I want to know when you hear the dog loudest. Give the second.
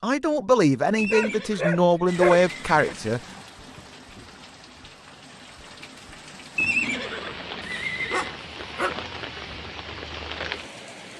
2 s.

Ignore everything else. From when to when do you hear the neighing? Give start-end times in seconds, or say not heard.
0.9-3.0, 6.5-8.3.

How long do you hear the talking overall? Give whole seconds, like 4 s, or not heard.
3 s.